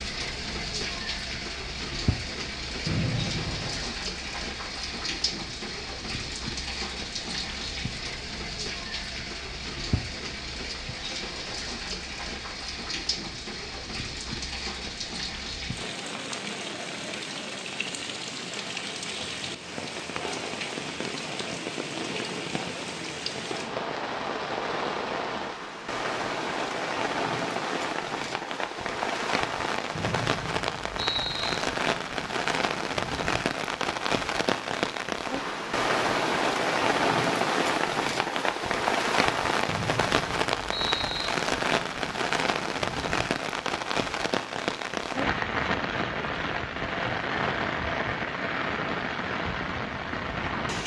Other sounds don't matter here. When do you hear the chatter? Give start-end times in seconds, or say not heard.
not heard.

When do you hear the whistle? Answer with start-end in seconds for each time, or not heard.
2.9-4.0, 29.9-31.6, 39.6-41.3.